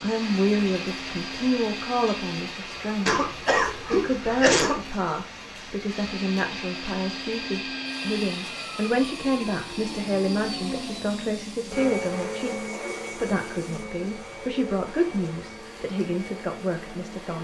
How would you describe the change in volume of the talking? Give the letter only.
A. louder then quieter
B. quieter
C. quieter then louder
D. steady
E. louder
D.